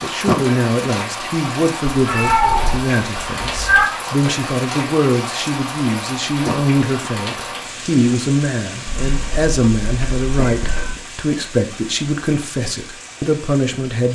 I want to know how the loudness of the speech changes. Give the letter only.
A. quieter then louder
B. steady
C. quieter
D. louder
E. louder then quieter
B.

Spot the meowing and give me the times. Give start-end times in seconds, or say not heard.
1.9-3.9, 8.8-11.0.